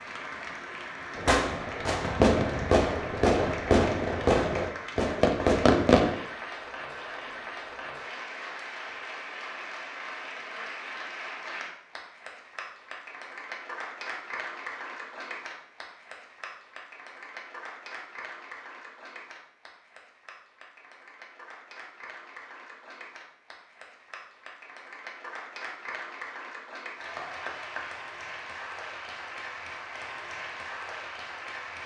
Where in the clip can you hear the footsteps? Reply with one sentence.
You can't hear the footsteps here.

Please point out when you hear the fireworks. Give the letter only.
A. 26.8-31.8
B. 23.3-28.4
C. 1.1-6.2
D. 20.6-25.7
C.